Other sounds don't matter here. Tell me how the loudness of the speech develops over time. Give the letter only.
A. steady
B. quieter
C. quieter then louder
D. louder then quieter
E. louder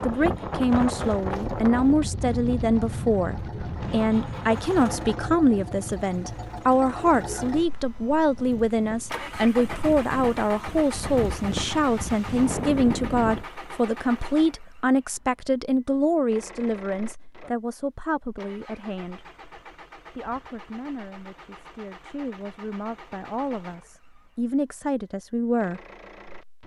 B.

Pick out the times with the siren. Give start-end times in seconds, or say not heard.
not heard.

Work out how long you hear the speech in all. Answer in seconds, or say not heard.
25 s.